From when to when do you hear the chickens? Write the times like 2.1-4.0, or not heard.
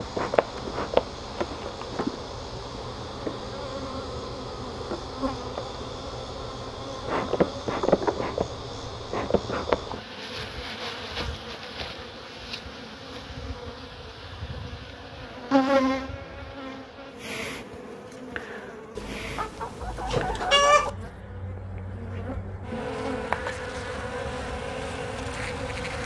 18.9-20.9.